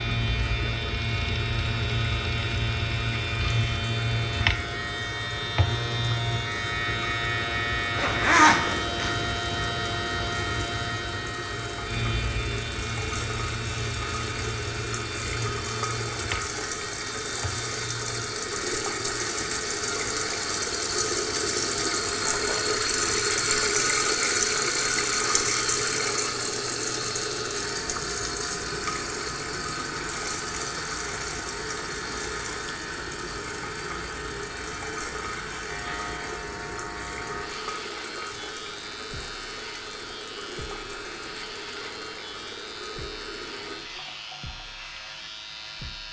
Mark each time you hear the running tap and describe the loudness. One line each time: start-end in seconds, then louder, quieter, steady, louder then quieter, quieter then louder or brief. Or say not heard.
0.0-46.0 louder then quieter.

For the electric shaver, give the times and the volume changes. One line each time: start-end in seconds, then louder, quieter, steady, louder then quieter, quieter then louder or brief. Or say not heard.
0.0-46.0 quieter.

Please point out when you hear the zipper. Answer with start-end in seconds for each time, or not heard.
8.0-9.1.